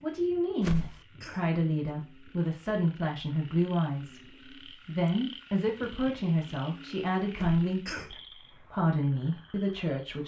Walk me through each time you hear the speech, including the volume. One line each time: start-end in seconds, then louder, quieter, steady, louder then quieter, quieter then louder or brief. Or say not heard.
0.0-10.2 steady.